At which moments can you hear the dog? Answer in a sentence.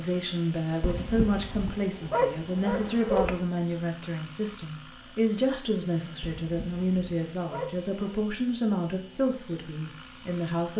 You can hear the dog from 0.8 to 3.5 s and from 6.2 to 8.2 s.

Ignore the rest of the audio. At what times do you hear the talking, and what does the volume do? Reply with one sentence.
The talking can be heard from 0.0 to 10.7 s, at a steady volume.